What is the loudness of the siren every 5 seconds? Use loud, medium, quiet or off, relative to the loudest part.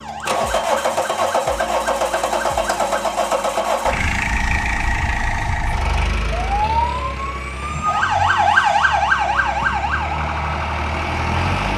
medium, loud, medium.